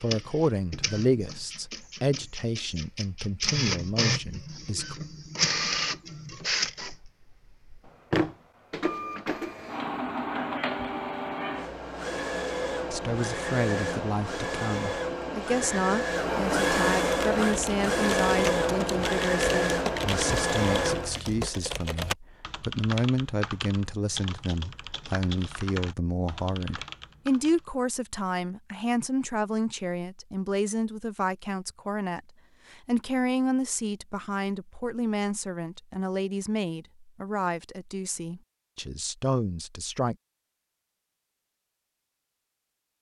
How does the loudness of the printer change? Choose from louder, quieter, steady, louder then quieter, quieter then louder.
louder.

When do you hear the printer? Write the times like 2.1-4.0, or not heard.
0.0-21.1.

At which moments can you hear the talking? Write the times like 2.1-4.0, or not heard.
0.0-5.0, 12.9-40.1.